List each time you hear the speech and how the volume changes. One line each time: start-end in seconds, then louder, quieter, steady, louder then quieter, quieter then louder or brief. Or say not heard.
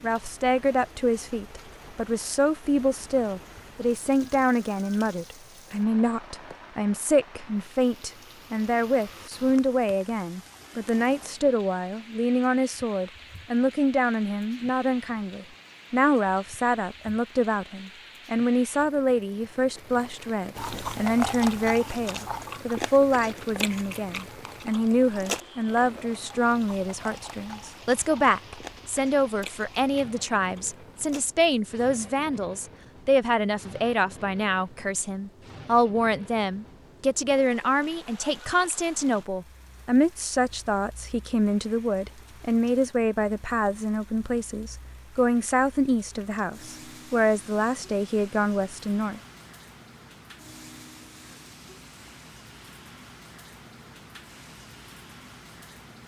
0.0-49.2 steady.